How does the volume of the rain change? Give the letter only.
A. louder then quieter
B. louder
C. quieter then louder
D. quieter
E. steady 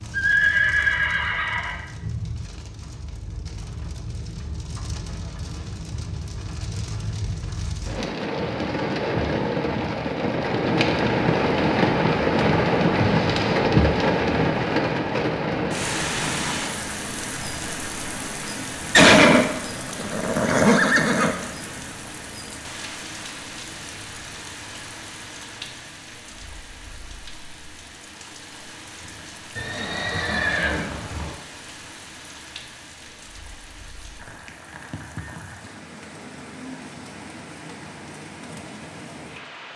A.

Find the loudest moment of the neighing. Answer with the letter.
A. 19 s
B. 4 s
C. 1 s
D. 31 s
A.